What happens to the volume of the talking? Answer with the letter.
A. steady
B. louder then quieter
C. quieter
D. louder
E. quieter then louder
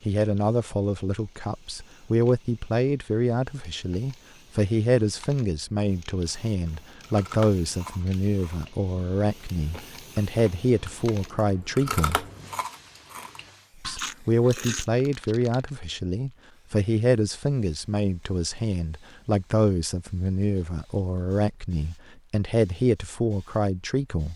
A.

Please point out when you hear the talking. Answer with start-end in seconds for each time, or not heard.
0.1-12.2, 13.8-24.3.